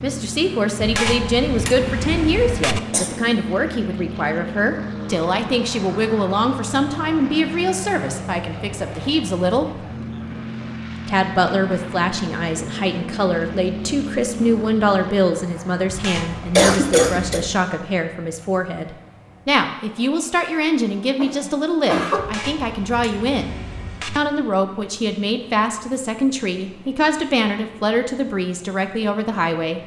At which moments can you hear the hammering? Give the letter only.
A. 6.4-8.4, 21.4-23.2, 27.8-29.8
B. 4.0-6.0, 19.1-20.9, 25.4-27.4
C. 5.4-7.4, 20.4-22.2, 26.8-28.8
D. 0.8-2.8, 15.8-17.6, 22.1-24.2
D.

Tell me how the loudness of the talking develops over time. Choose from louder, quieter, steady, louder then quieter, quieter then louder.
steady.